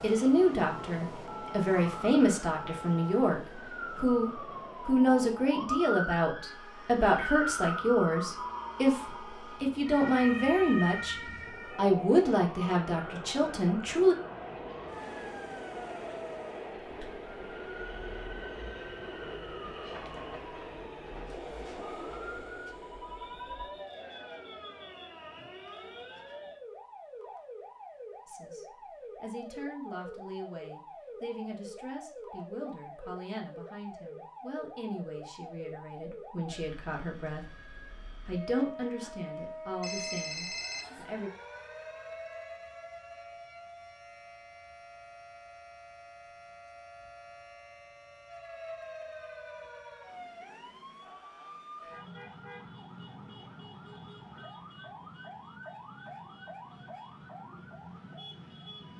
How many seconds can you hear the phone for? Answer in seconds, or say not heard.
5 s.